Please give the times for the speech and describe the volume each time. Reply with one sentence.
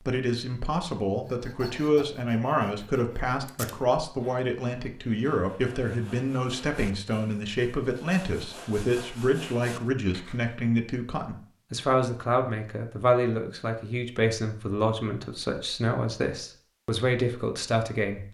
You can hear the speech from 0.1 to 18.2 s, at a steady volume.